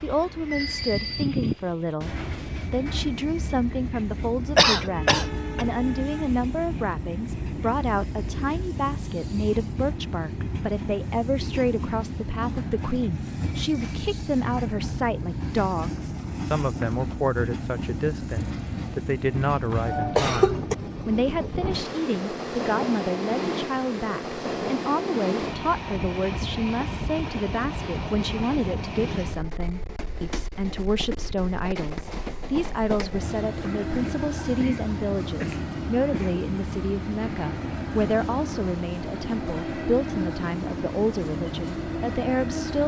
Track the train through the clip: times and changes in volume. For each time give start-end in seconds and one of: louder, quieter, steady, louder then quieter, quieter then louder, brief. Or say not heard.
0.0-42.8 steady.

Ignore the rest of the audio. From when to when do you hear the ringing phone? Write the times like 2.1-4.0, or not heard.
not heard.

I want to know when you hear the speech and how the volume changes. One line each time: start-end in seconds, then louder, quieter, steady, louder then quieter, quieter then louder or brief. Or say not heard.
0.0-42.8 steady.